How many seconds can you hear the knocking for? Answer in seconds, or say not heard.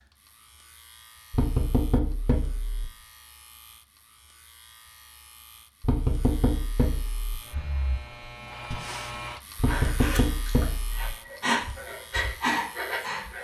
5 s.